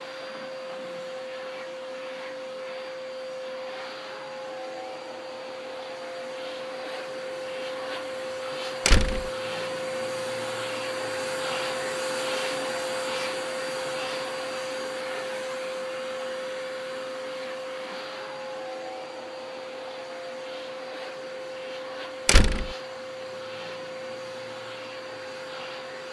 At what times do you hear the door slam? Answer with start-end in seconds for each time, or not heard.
8.8-9.3, 22.2-22.7.